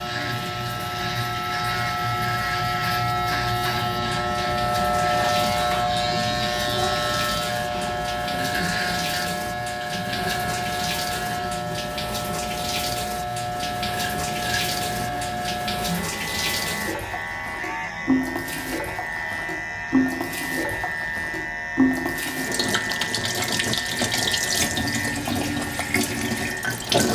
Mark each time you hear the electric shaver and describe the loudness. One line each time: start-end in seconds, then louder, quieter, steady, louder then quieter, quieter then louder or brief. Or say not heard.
0.0-27.1 quieter.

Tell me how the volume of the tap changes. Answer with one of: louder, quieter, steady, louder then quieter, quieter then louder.
louder.